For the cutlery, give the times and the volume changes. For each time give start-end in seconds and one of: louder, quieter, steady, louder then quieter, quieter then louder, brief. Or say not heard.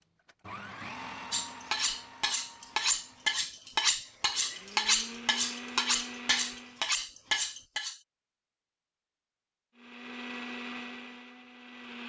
1.3-8.0 steady.